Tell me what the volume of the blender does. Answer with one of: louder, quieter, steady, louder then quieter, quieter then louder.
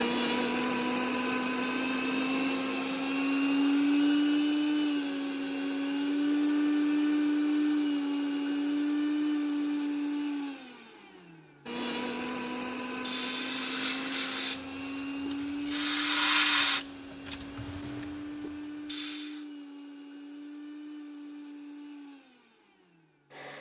quieter.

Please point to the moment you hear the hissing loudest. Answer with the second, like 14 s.
16 s.